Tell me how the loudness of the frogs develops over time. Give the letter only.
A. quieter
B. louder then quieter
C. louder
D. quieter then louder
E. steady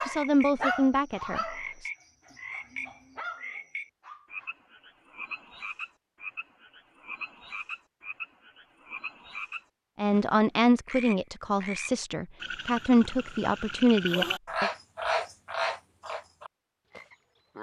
C.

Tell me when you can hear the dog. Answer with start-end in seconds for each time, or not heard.
0.0-4.5.